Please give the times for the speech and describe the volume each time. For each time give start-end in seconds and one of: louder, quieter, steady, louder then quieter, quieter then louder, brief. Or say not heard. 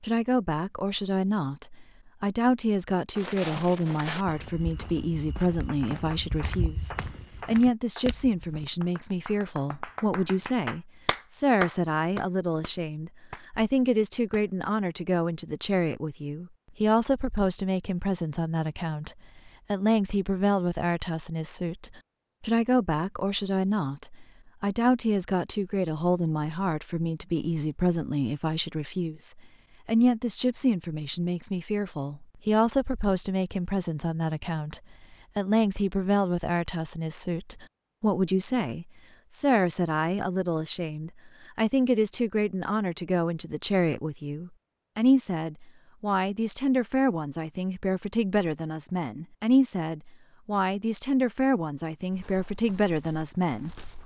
0.0-53.8 steady.